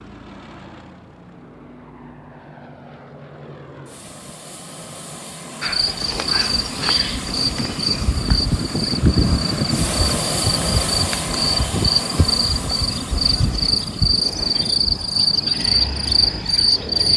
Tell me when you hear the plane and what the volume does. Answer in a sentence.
The plane can be heard from 0.0 to 17.0 s, getting louder then quieter.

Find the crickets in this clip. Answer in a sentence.
The crickets can be heard from 5.6 to 17.1 s.